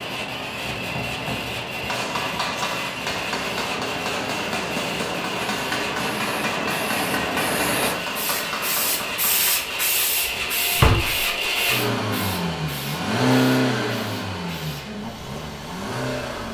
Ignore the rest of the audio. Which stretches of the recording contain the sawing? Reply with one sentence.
The sawing can't be heard in this clip.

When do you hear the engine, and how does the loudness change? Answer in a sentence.
The engine can be heard from 0.0 to 16.5 s, getting louder.